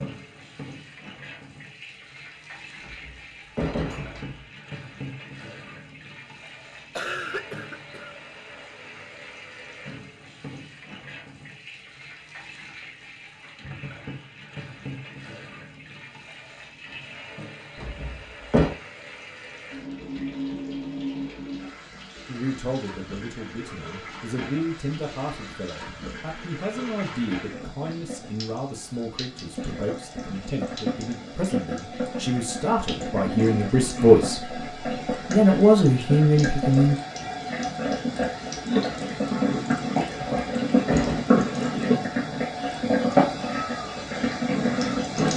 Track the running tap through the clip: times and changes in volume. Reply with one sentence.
You can hear the running tap from 0.0 to 45.3 s, getting louder.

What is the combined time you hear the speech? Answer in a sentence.
You can hear the speech for 14 seconds altogether.